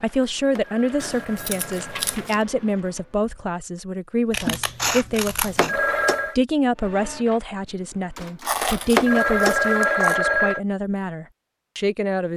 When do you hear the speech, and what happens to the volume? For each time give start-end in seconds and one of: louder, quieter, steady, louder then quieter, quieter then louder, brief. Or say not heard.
0.0-12.3 steady.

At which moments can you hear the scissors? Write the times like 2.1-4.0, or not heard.
1.0-2.4, 4.3-5.8, 8.4-10.2.